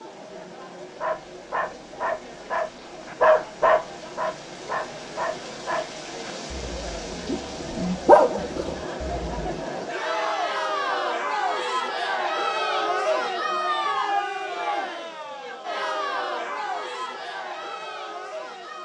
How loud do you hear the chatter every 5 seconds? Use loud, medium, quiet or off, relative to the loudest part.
quiet, medium, loud, medium.